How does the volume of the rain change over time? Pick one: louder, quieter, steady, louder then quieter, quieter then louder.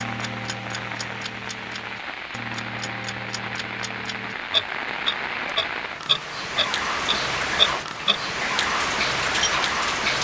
louder.